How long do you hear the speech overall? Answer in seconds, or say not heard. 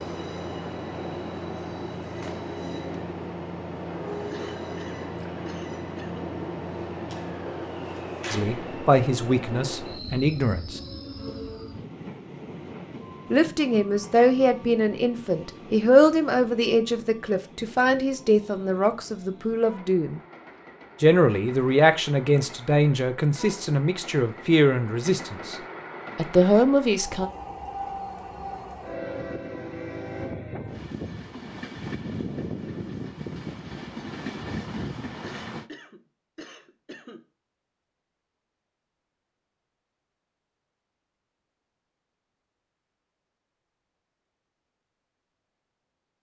15 s.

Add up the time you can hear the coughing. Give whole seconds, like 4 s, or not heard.
4 s.